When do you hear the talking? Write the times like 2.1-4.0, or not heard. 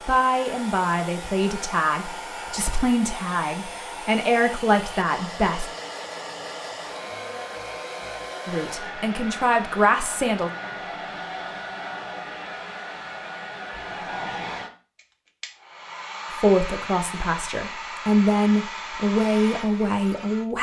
0.1-5.7, 8.4-10.5, 16.4-20.5.